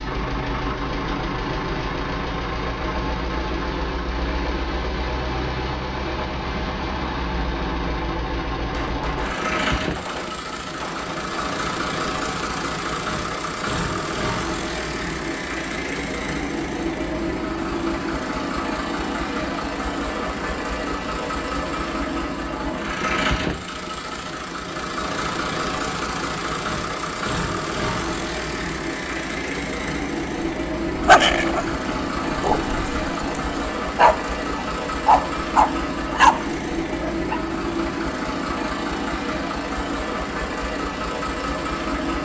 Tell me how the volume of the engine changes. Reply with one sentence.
The loudness of the engine stays about the same.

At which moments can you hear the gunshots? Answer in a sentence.
You can hear the gunshots from 8.6 to 11.6 s.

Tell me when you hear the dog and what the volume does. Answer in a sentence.
The dog can be heard from 30.9 to 37.4 s, getting louder.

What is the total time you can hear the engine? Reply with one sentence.
The engine can be heard for 42 seconds in total.